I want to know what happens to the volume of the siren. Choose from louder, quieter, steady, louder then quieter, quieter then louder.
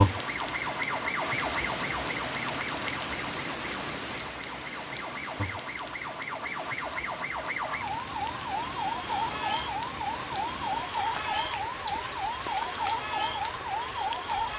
quieter then louder.